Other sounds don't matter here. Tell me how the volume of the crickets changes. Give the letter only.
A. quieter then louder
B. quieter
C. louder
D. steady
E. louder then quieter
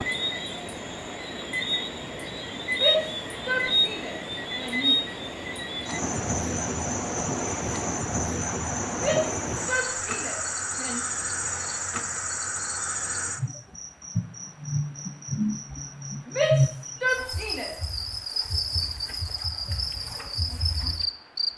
D.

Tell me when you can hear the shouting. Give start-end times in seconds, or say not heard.
2.7-5.0, 8.9-11.0, 16.2-17.7.